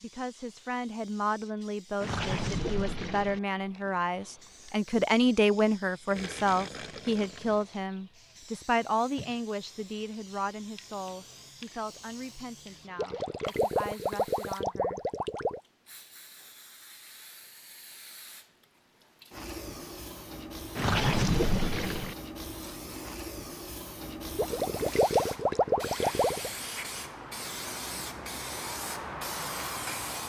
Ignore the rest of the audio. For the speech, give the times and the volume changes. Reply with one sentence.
You can hear the speech from 0.0 to 15.0 s, getting louder then quieter.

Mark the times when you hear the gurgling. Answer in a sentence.
You can hear the gurgling from 2.0 to 3.4 s, from 6.1 to 7.7 s, from 12.9 to 15.6 s, from 20.8 to 22.1 s and from 24.4 to 26.5 s.